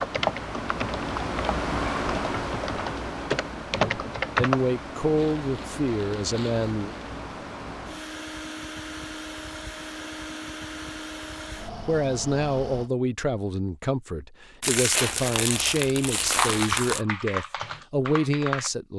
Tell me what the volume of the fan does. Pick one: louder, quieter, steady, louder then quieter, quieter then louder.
quieter.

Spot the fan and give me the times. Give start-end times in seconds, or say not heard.
0.0-12.9.